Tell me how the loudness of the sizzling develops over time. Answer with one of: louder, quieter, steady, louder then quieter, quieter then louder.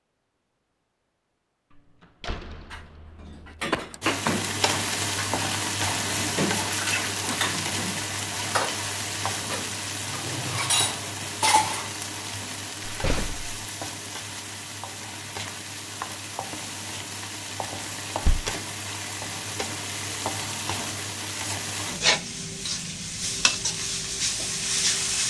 quieter then louder.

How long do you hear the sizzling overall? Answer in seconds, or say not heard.
21 s.